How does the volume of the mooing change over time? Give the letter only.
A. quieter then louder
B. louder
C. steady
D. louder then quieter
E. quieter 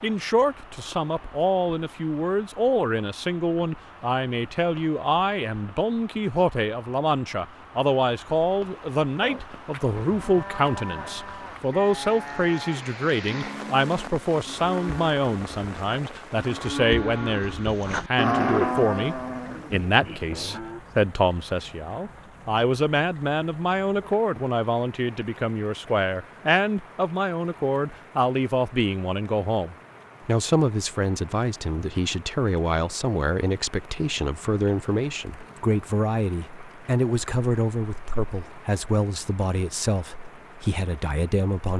D.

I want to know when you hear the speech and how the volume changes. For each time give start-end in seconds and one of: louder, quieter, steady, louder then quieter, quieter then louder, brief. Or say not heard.
0.0-41.7 steady.